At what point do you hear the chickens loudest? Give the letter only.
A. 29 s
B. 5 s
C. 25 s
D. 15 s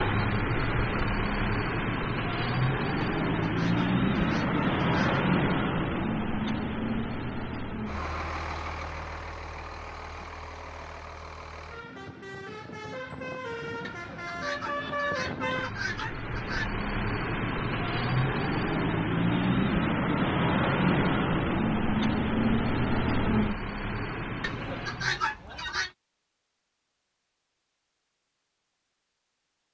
C.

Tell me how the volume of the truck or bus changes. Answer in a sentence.
The loudness of the truck or bus goes down, then up.